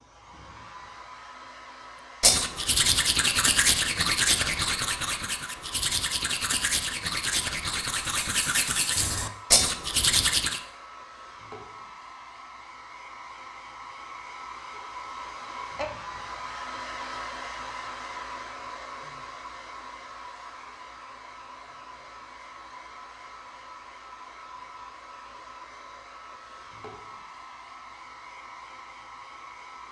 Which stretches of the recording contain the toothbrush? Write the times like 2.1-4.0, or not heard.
2.2-10.6.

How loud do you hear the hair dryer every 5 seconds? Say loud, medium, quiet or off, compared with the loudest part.
medium, medium, medium, loud, medium, medium.